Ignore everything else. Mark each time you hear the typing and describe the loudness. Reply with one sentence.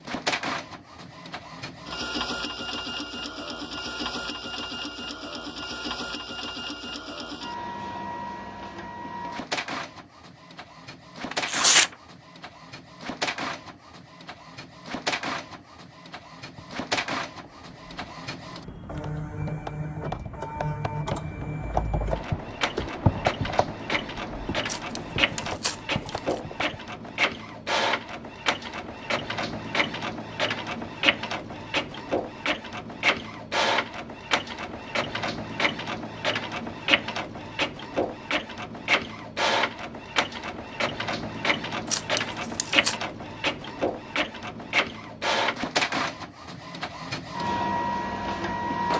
You can hear the typing from 16.6 to 26.9 s, getting louder then quieter.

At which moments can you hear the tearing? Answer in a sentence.
You can hear the tearing from 11.3 to 11.9 s, from 24.6 to 26.4 s and from 41.9 to 43.0 s.